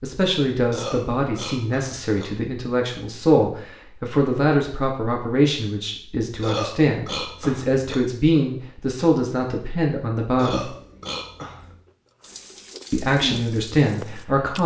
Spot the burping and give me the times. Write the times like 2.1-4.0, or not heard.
0.7-2.2, 6.4-8.0, 10.3-11.8.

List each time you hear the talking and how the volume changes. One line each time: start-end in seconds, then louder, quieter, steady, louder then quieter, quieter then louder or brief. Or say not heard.
0.0-10.7 steady
12.9-14.6 brief.